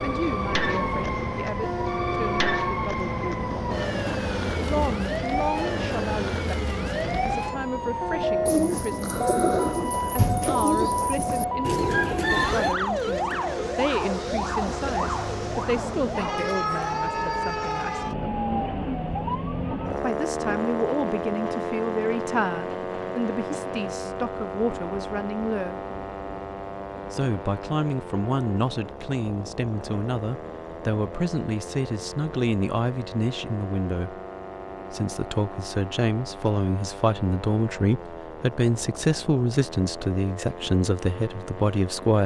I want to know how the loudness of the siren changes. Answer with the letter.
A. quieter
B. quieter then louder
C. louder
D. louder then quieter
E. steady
A.